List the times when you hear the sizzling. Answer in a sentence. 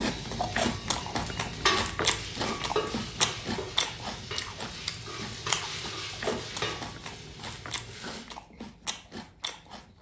The sizzling can be heard from 0.0 to 8.2 s.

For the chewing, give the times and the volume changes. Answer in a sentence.
You can hear the chewing from 0.0 to 9.9 s, getting quieter.